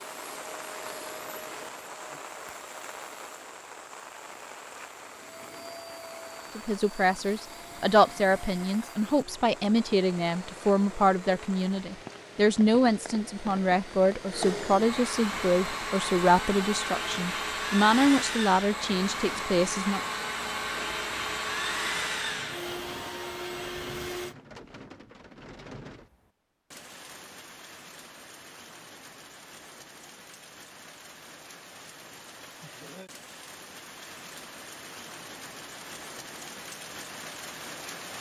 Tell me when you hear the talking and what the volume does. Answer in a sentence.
You can hear the talking from 6.5 to 20.0 s, at a steady volume.